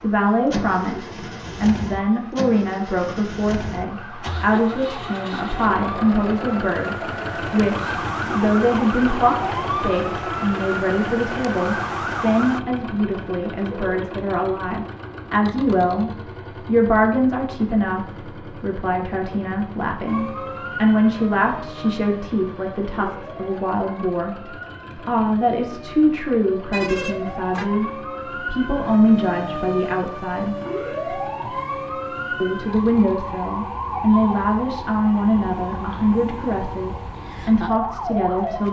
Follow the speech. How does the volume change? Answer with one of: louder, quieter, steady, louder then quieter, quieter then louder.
steady.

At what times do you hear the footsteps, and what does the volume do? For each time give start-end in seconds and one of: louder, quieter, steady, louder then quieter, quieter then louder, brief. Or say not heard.
not heard.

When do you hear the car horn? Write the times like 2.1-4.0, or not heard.
13.6-14.0, 26.7-27.7.